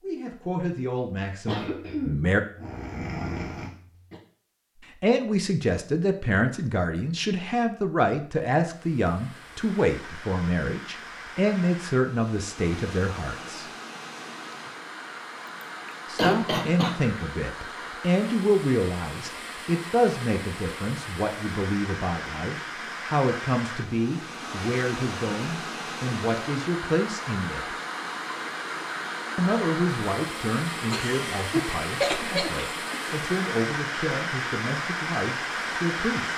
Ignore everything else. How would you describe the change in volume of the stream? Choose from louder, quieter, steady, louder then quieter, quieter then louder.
louder.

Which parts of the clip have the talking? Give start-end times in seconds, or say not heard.
0.0-2.4, 5.0-13.7, 16.1-27.8, 29.4-36.3.